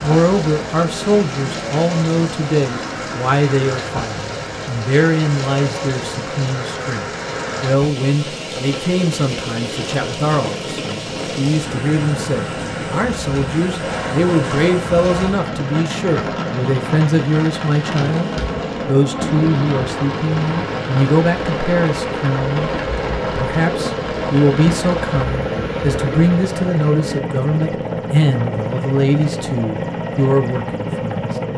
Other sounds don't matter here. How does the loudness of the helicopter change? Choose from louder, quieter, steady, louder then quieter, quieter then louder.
louder.